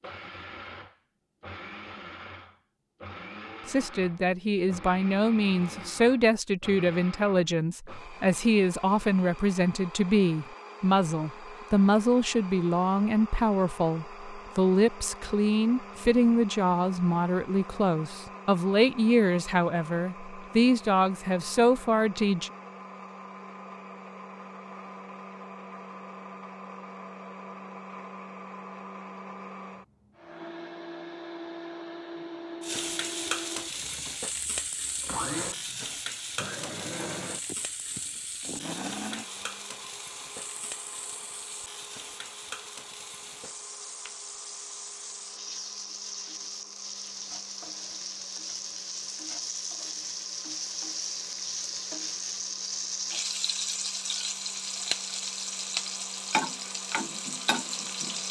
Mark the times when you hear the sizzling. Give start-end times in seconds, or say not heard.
32.6-58.2.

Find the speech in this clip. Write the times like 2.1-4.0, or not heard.
3.6-22.5.